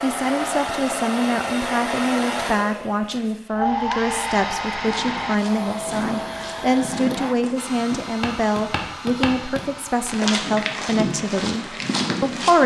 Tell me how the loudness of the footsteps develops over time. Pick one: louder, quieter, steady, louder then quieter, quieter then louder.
louder.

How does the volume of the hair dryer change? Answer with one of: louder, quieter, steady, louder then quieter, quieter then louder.
quieter.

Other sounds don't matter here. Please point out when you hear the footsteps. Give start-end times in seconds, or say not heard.
4.7-12.6.